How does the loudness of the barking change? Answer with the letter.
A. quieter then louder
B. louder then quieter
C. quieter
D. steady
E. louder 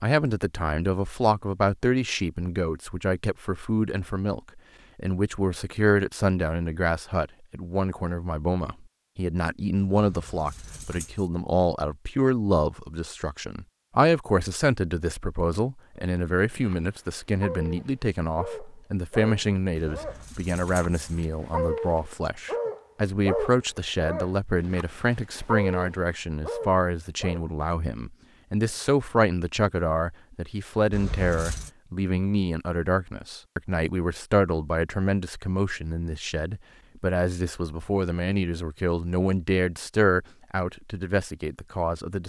E.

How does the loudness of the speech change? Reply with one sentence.
The loudness of the speech stays about the same.